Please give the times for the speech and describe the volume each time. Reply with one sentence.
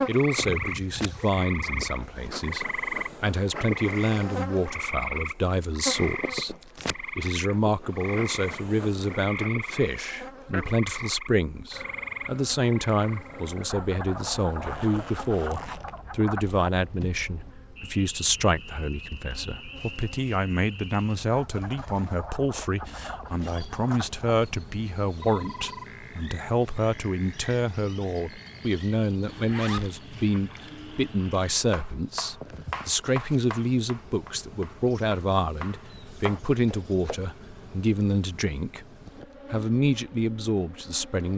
You can hear the speech from 0.1 to 38.9 s, at a steady volume; and briefly from 39.5 to 41.3 s.